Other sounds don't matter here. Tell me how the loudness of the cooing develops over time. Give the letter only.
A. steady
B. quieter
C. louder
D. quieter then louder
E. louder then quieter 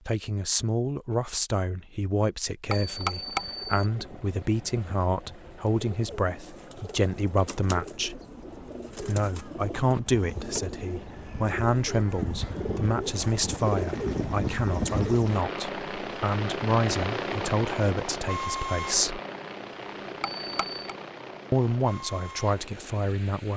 C.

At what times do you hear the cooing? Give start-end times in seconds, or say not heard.
3.2-15.3.